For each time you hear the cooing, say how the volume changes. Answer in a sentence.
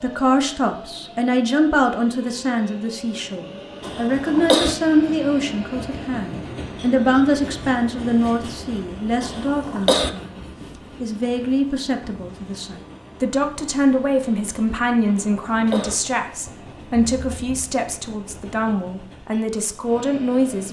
The cooing can't be heard in this clip.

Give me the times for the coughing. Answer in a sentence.
The coughing can be heard from 3.8 to 4.8 s, from 9.2 to 10.1 s and from 15.1 to 15.9 s.